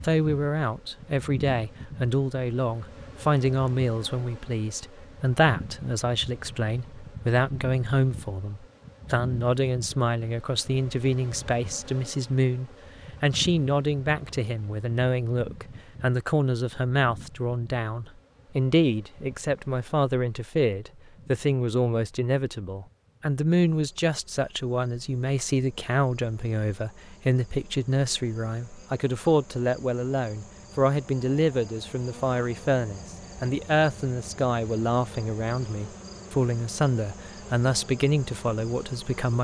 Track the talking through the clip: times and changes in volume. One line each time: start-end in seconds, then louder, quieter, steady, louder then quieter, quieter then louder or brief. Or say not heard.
0.0-39.4 steady.